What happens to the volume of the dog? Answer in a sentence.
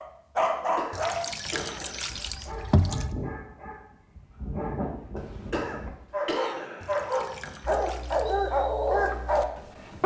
The volume of the dog goes down, then up.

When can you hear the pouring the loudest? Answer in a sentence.
The volume of the pouring peaks at 3 seconds.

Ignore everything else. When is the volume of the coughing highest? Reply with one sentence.
The loudest moment of the coughing is at 6 seconds.